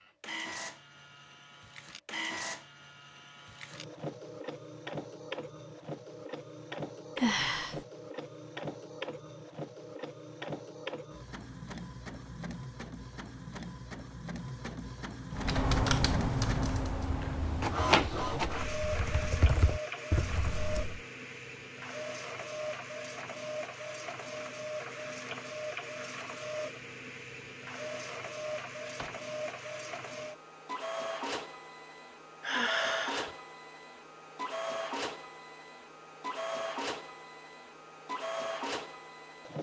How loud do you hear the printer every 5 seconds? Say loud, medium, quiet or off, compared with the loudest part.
medium, medium, medium, loud, medium, medium, medium, medium.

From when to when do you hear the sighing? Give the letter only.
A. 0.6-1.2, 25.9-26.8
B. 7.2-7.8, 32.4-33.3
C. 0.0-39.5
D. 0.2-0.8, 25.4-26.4
B.